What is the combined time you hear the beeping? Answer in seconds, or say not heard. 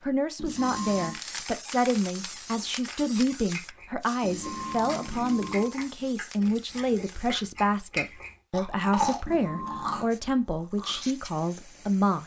3 s.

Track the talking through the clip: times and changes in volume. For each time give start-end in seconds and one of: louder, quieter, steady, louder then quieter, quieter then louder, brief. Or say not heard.
0.0-12.2 steady.